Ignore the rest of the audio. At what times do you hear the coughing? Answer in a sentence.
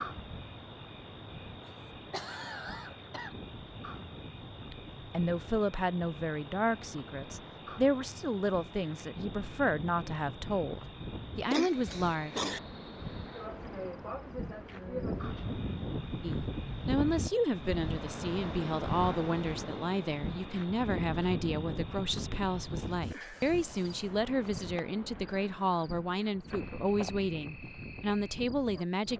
You can hear the coughing from 1.6 to 3.4 s, from 11.4 to 12.6 s and from 23.0 to 24.0 s.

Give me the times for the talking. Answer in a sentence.
You can hear the talking from 4.7 to 12.3 s and from 16.2 to 29.1 s.